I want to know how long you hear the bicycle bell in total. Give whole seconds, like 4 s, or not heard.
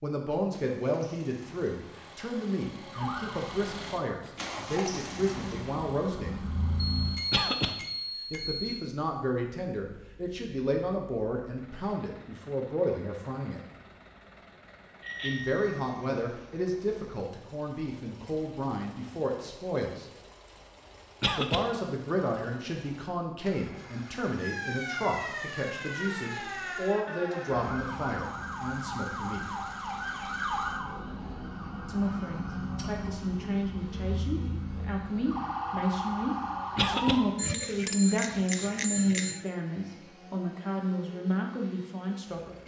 5 s.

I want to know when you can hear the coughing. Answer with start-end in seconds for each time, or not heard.
7.3-7.8, 21.2-21.6, 36.8-37.2.